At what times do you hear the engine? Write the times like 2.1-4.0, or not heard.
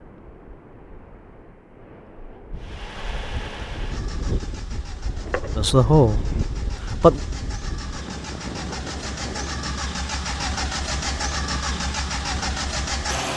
2.5-13.3.